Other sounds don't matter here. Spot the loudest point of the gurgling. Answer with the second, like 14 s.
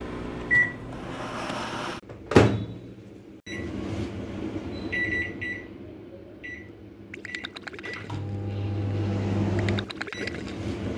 10 s.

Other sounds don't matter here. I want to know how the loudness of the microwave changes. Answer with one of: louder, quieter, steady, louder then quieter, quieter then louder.
quieter then louder.